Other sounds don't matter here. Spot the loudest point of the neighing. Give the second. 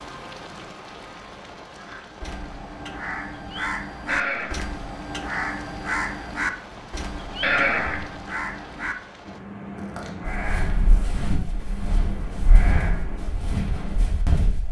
8 s.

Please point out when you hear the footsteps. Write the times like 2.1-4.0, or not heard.
9.9-14.6.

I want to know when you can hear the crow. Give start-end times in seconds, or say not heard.
1.8-13.6.